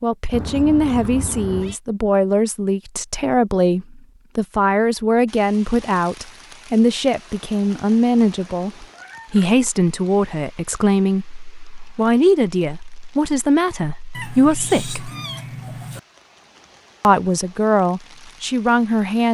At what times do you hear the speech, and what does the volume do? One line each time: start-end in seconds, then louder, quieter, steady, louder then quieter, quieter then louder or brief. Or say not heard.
0.0-15.1 steady
17.0-19.2 brief.